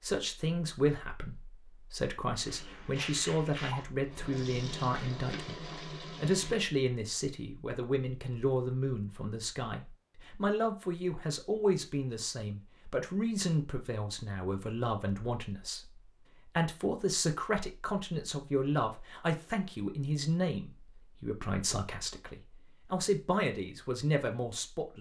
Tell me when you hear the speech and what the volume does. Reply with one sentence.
You can hear the speech from 0.0 to 24.9 s, at a steady volume.